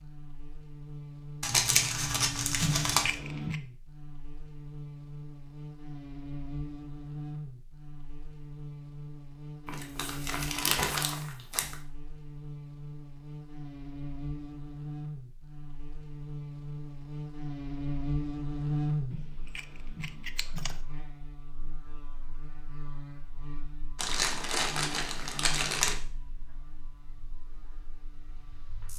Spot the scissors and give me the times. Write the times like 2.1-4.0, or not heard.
2.6-3.6, 19.1-20.8.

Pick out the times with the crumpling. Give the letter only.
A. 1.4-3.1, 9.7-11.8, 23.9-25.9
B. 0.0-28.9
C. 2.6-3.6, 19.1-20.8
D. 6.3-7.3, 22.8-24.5
A.